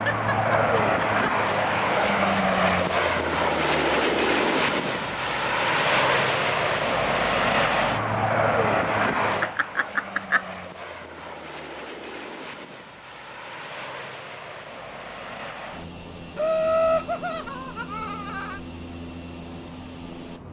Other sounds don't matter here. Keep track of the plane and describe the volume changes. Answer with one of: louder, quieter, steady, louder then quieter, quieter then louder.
quieter.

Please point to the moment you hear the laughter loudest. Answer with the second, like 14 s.
17 s.